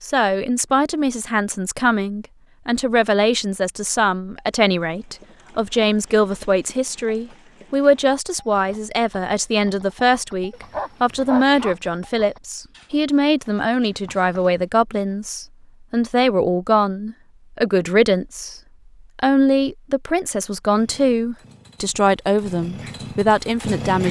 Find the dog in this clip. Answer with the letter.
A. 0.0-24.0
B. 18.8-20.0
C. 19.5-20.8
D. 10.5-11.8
D.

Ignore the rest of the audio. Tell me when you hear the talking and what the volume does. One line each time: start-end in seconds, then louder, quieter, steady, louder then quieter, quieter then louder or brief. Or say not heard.
0.0-24.0 steady.